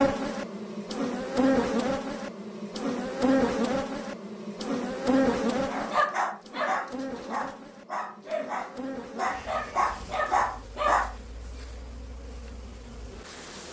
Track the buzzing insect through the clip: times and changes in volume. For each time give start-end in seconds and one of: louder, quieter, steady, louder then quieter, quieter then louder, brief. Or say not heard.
0.0-13.6 quieter.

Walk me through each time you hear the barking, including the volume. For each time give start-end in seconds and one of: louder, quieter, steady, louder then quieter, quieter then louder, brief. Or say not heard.
5.7-11.2 quieter then louder.